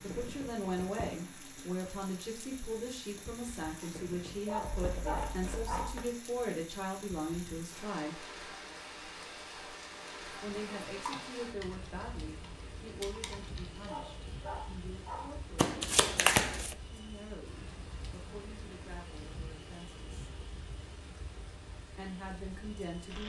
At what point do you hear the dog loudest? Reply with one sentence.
The volume of the dog peaks at 5 seconds.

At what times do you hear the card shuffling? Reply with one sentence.
The card shuffling can be heard from 4.8 to 6.1 s, from 10.3 to 10.8 s and from 15.6 to 16.8 s.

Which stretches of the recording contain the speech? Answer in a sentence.
You can hear the speech from 0.0 to 8.2 s, from 10.4 to 20.3 s and from 21.9 to 23.2 s.